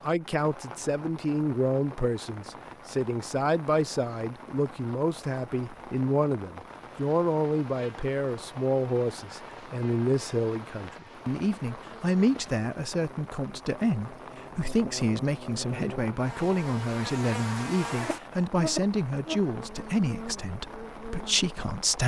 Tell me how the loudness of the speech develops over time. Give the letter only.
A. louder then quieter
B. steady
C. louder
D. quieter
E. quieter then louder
B.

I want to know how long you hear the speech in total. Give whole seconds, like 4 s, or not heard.
22 s.